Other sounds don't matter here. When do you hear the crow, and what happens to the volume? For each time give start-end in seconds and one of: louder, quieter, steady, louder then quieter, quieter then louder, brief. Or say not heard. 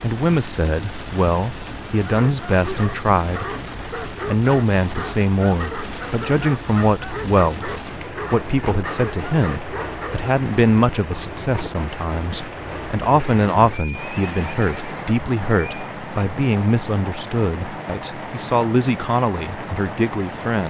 not heard.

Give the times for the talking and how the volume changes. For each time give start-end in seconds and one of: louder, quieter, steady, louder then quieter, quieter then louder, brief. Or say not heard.
0.0-20.6 steady.